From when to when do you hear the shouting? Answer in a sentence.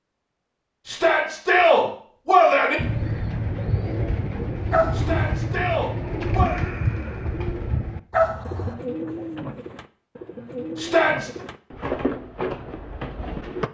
The shouting can be heard from 0.8 to 2.8 s, from 4.9 to 6.5 s and from 10.8 to 11.4 s.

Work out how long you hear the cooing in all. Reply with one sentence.
The cooing can be heard for 11 seconds in total.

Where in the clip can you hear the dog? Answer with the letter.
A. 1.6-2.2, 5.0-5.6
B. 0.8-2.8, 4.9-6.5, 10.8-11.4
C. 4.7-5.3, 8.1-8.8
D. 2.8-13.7
C.